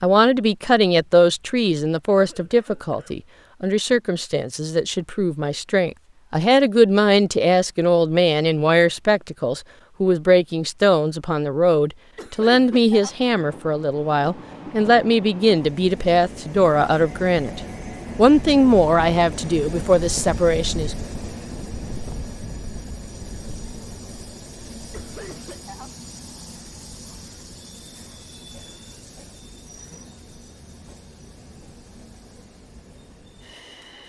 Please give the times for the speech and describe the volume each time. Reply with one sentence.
The speech can be heard from 0.0 to 20.9 s, at a steady volume.